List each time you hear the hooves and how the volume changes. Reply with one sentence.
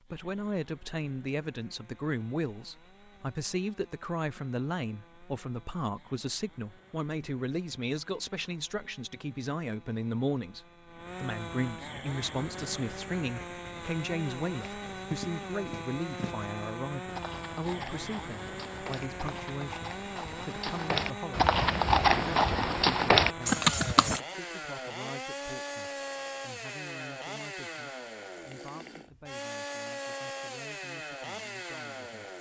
You can hear the hooves from 14.6 to 24.2 s, getting louder.